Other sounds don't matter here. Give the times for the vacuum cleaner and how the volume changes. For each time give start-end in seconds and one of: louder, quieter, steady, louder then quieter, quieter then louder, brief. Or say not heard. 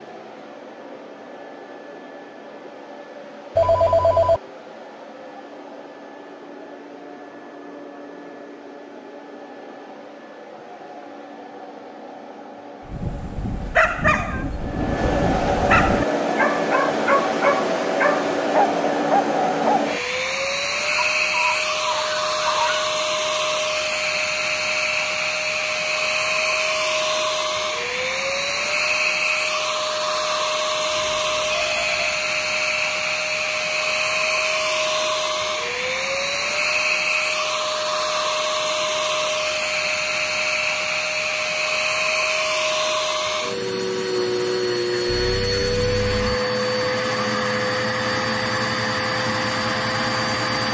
0.0-50.6 louder.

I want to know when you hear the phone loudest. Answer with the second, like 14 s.
4 s.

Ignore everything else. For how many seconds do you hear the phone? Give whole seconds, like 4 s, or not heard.
3 s.